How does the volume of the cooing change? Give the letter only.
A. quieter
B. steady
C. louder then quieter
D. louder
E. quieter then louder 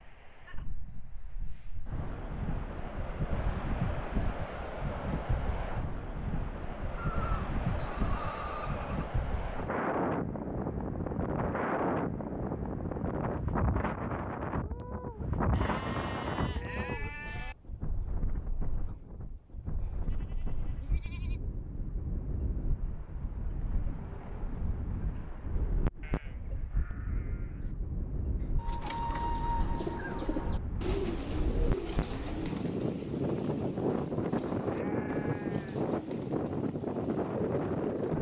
A.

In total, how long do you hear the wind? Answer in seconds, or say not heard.
38 s.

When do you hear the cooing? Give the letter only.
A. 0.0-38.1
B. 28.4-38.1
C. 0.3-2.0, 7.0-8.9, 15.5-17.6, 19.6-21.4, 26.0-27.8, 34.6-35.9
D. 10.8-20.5
B.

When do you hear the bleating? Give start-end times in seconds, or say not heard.
0.3-2.0, 7.0-8.9, 15.5-17.6, 19.6-21.4, 26.0-27.8, 34.6-35.9.